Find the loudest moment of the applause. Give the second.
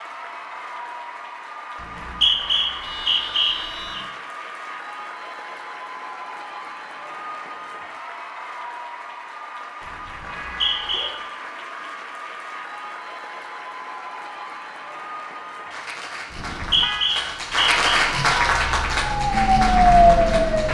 18 s.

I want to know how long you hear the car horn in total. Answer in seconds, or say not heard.
3 s.